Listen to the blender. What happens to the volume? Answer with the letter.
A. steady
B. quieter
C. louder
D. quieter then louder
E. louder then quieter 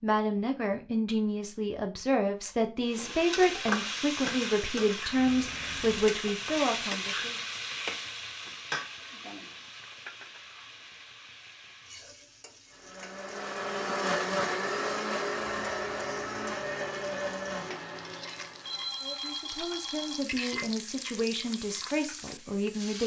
B.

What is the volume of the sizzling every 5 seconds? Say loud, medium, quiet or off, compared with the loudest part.
loud, loud, quiet, quiet, medium.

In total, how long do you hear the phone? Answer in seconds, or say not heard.
3 s.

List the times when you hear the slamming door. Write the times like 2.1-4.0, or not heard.
not heard.